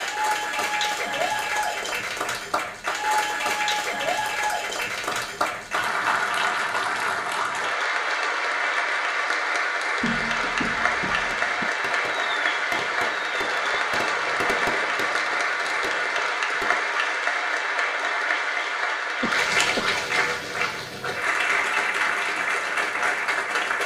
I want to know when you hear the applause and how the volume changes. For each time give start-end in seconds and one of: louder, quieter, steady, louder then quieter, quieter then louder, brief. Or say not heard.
0.0-23.8 steady.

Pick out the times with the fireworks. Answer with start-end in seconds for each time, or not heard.
11.1-16.9.